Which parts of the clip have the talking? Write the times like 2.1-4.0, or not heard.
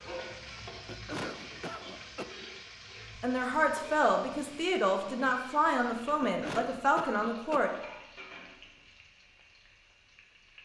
3.2-7.7.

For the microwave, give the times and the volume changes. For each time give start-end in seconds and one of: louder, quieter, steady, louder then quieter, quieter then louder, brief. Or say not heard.
not heard.